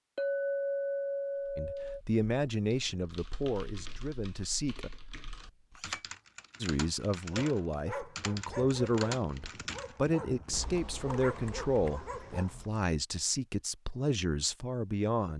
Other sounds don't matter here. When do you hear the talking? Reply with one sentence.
You can hear the talking from 1.6 to 4.9 s and from 6.6 to 15.3 s.